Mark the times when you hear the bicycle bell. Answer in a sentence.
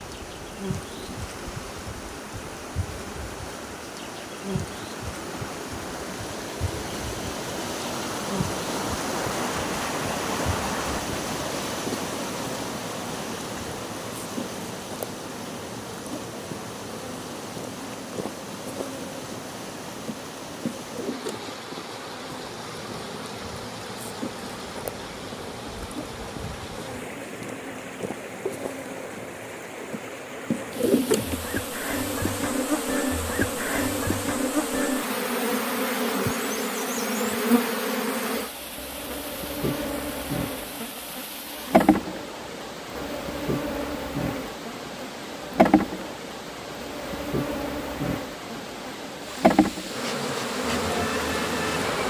You can't hear the bicycle bell here.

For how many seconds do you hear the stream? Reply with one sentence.
You can hear the stream for 52 seconds altogether.